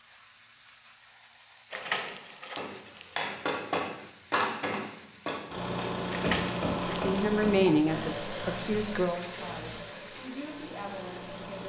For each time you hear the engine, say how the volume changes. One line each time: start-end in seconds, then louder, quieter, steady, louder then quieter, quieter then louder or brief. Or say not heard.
5.5-11.6 quieter.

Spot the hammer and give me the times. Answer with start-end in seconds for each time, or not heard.
2.5-7.7.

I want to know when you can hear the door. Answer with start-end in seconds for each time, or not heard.
1.7-3.2, 6.1-7.2.